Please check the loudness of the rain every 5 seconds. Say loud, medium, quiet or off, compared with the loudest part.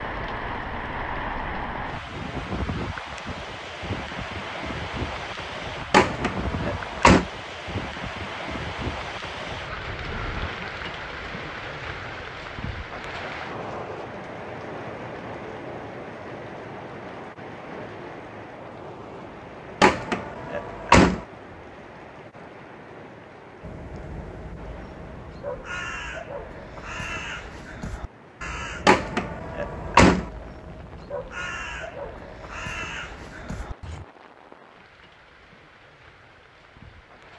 loud, loud, loud, medium, medium, quiet, quiet, quiet.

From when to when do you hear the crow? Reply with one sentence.
The crow can be heard from 23.6 to 34.0 s.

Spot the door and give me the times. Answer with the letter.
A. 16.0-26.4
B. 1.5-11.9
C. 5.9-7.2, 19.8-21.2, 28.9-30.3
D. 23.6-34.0
C.